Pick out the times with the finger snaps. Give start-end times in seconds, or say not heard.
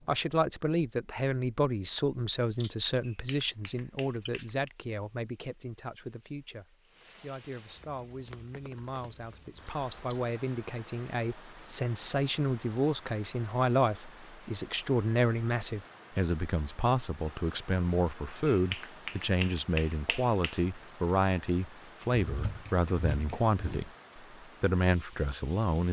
3.0-4.7, 18.4-20.6.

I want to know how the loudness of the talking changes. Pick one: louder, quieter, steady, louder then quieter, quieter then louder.
quieter then louder.